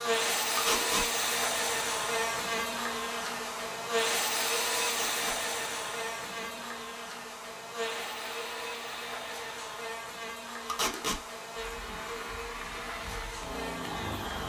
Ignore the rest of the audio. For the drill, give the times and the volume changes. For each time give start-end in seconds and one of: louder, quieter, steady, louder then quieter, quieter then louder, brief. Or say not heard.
0.0-14.4 quieter.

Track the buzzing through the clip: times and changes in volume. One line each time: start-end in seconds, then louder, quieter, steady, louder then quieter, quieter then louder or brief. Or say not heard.
0.0-14.4 quieter.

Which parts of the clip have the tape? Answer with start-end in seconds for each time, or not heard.
0.6-1.1, 5.0-5.4, 10.7-11.2.